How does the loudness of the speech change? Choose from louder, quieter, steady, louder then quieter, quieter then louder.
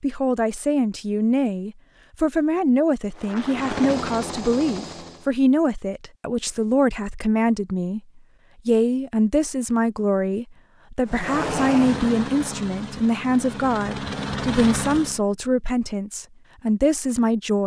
steady.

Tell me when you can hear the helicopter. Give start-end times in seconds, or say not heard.
3.1-5.3, 11.1-15.2.